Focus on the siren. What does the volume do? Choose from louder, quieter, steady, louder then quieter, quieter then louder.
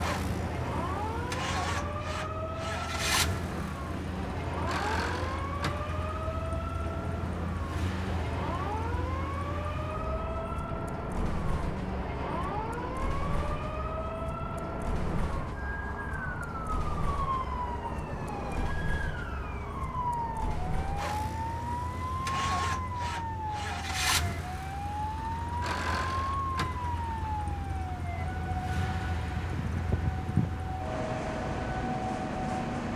steady.